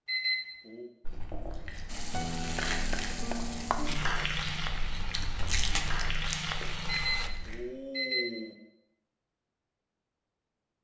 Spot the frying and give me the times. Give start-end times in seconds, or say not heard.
1.9-7.3.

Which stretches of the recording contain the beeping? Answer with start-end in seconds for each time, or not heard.
0.1-0.9, 6.8-8.6.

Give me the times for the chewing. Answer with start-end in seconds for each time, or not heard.
1.1-7.6.